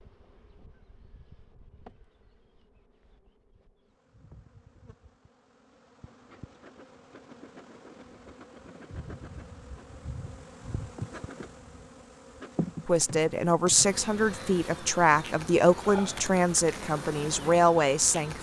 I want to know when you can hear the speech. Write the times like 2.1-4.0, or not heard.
12.8-18.3.